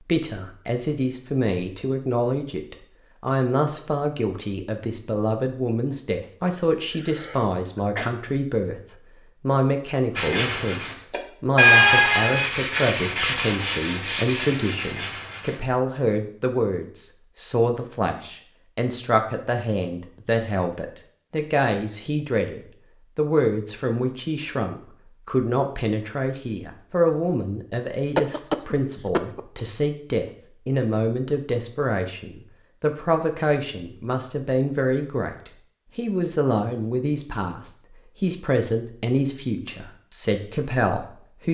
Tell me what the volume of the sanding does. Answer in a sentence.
The loudness of the sanding goes up, then down.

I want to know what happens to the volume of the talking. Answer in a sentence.
The volume of the talking stays about the same.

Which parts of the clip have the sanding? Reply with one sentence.
You can hear the sanding from 10.2 to 15.6 s.